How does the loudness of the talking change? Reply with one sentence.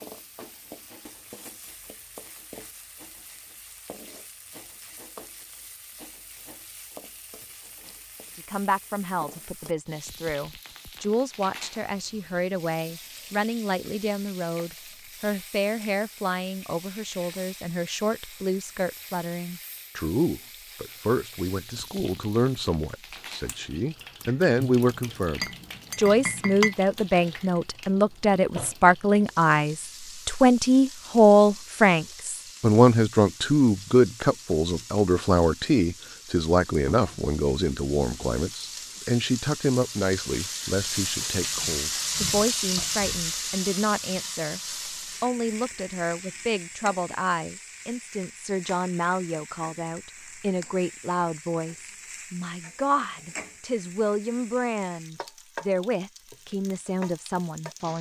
The volume of the talking goes up, then down.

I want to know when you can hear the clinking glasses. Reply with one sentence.
You can hear the clinking glasses from 24.7 to 26.8 s.